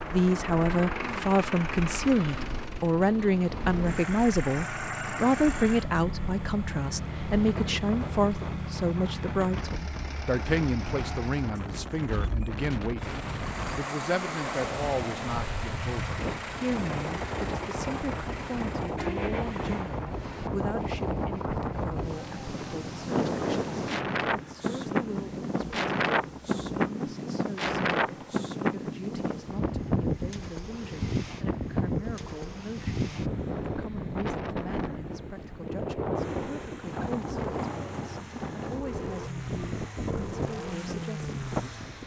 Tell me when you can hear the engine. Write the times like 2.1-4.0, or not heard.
0.0-42.0.